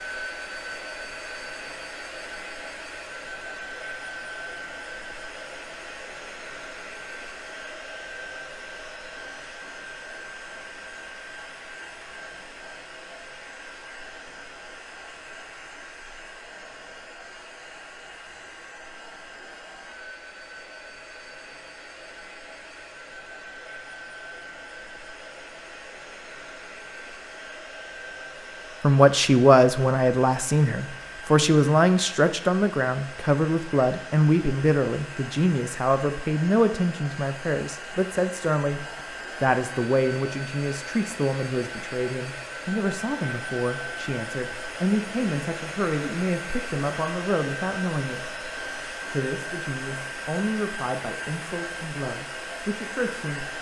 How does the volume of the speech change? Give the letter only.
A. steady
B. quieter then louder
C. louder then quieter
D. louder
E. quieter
E.